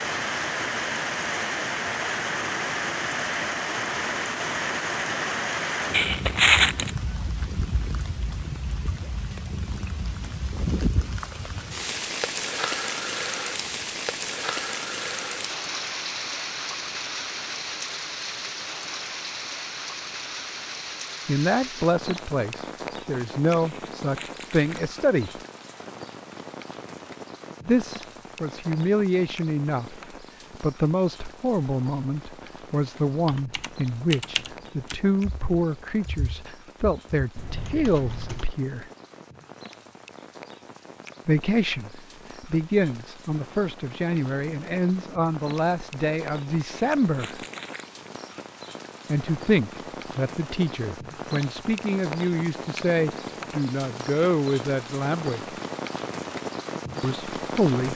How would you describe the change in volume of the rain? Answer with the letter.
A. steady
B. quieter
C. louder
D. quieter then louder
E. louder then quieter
D.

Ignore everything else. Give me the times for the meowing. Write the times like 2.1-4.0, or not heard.
not heard.